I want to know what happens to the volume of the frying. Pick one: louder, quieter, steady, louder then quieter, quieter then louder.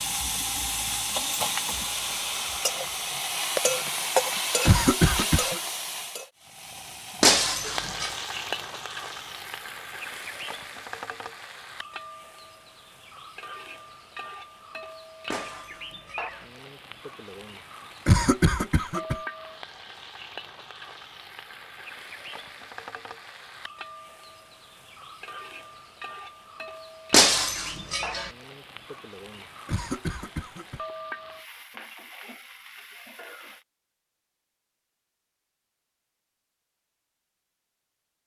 quieter.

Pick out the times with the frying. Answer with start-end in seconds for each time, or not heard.
0.0-33.6.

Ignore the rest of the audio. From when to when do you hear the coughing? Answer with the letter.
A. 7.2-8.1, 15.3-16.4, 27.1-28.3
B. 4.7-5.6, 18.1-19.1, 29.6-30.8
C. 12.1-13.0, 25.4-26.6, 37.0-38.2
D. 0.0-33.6
B.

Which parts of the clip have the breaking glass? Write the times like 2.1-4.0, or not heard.
7.2-8.1, 15.3-16.4, 27.1-28.3.